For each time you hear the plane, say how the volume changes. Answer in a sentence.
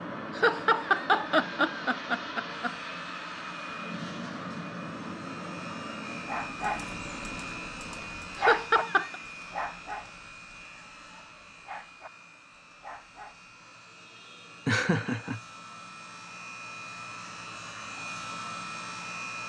You can hear the plane from 0.0 to 19.4 s, getting quieter then louder.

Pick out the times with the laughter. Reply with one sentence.
You can hear the laughter from 0.3 to 2.7 s, from 8.3 to 9.2 s and from 14.7 to 15.4 s.